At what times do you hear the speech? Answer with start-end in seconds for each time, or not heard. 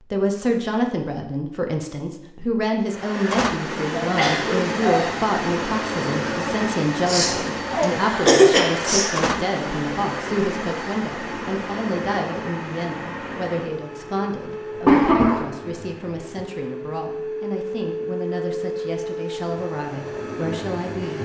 0.1-21.1.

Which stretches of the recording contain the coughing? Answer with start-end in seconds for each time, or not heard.
4.0-5.2, 7.0-9.1, 14.8-15.4.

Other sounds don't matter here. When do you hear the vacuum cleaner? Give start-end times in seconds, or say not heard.
2.9-21.1.